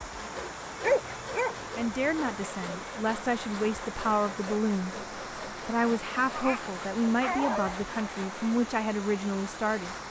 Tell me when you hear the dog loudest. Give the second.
1 s.